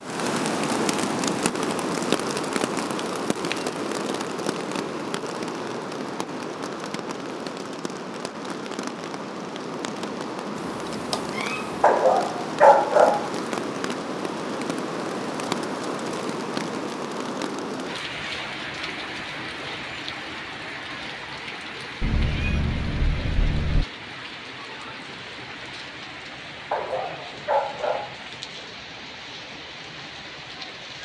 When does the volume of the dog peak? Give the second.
13 s.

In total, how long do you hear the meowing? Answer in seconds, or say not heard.
3 s.